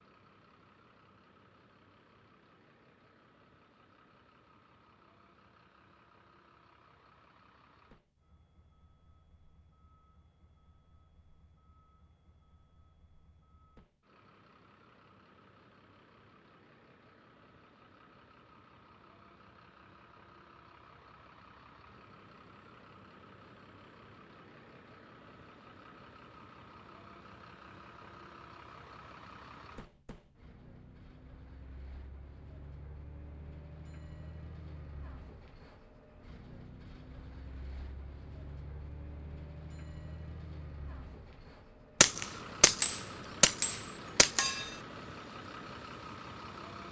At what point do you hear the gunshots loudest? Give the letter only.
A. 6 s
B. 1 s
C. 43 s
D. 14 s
C.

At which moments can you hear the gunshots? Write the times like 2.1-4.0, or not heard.
42.0-44.6.